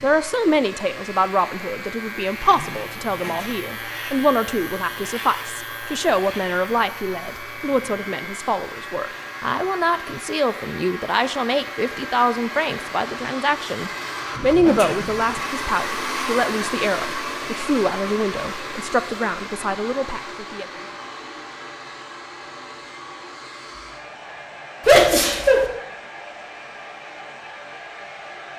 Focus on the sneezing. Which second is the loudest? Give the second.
25 s.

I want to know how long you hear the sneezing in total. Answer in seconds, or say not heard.
3 s.